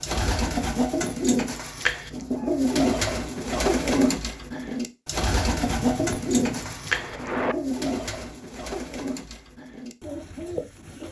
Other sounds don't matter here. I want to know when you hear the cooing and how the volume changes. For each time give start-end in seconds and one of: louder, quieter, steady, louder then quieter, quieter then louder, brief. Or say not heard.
0.0-11.0 quieter.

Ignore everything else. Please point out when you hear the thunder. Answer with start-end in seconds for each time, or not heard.
5.8-7.5.